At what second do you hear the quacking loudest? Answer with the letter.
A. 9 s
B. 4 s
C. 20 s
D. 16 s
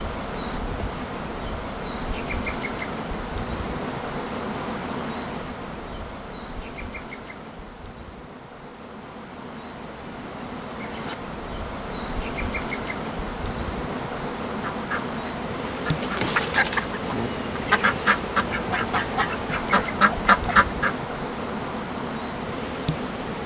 C.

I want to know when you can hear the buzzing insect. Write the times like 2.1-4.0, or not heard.
0.0-23.4.